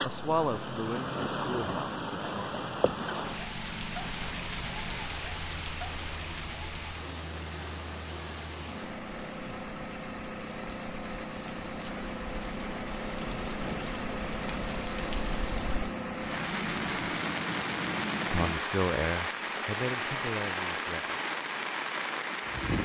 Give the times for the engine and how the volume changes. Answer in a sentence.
You can hear the engine from 0.1 to 18.6 s, getting louder.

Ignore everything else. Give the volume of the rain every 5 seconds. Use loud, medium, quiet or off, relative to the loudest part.
loud, medium, medium, loud, loud.